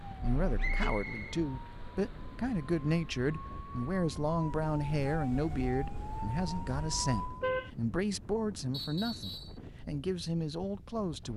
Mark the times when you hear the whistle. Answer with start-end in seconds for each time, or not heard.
0.6-1.4, 8.7-9.6.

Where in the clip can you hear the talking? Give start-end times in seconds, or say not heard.
0.1-11.3.